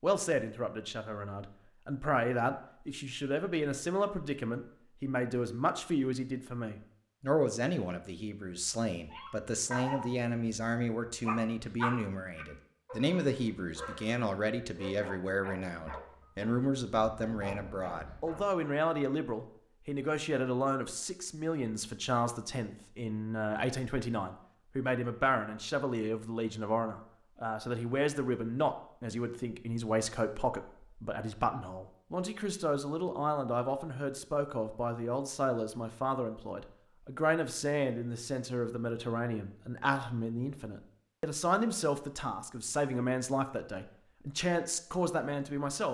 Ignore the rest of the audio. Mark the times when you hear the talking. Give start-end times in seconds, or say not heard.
0.0-45.8.